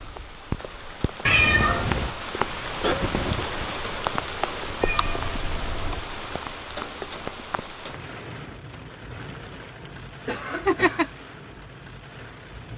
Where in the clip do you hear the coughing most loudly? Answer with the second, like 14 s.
3 s.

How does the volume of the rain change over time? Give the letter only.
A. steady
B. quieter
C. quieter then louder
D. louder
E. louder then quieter
B.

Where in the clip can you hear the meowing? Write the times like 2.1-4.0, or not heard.
1.2-2.1, 4.8-6.0, 10.5-11.1.